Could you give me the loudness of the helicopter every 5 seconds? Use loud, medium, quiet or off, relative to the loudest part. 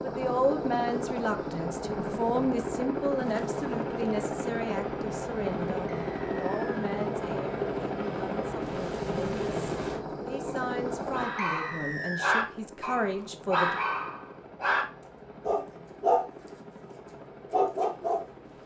loud, loud, medium, quiet.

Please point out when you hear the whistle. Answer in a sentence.
You can hear the whistle from 5.8 to 6.8 s and from 11.3 to 12.3 s.